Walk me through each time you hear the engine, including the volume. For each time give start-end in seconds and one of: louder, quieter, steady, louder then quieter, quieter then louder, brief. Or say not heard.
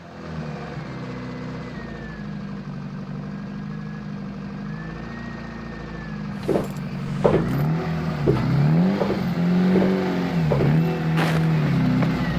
0.0-12.3 louder.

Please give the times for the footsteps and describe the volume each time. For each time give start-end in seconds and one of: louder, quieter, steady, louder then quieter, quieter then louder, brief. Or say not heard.
6.5-12.2 steady.